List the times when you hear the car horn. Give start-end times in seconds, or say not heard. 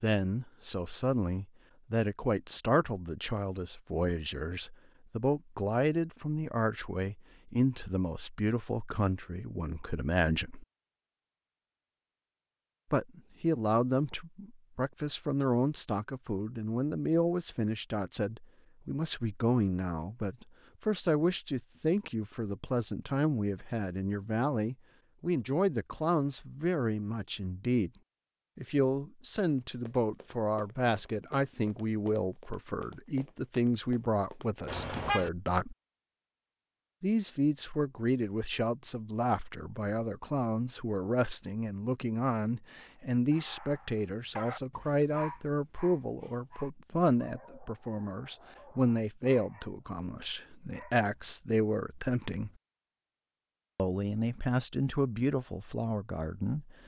34.6-35.3.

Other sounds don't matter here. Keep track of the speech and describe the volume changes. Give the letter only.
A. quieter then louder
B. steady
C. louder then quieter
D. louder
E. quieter
B.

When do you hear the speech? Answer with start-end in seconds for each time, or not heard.
0.0-10.7, 12.9-27.9, 28.6-35.8, 37.0-52.5, 53.8-56.8.